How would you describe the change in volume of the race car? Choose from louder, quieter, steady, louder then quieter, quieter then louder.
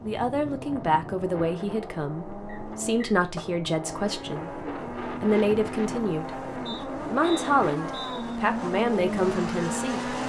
louder.